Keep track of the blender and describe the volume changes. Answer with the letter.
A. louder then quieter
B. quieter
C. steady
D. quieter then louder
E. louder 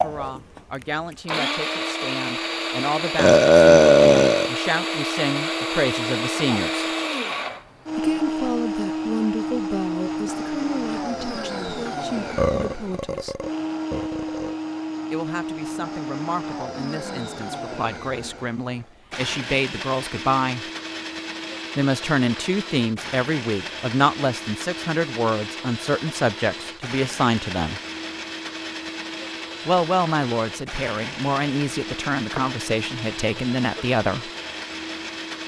B.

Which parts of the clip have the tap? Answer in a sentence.
You can't hear the tap here.